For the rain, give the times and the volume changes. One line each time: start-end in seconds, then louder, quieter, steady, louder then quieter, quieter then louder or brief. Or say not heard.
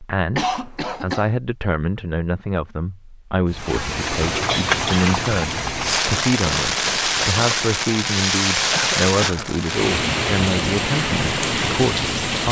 3.5-12.4 steady.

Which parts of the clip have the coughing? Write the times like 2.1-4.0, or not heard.
0.3-1.3, 4.2-5.1, 8.7-9.4.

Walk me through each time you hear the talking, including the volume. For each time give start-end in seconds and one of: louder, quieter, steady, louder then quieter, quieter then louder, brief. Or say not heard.
0.0-12.4 steady.